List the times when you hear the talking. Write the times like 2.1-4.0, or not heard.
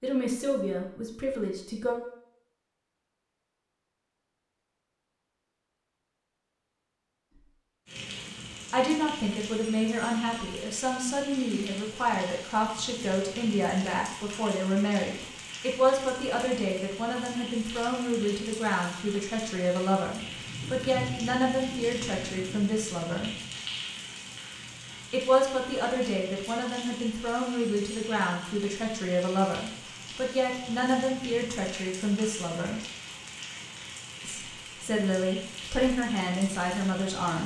0.0-2.0, 8.7-23.3, 25.1-32.8, 34.2-37.4.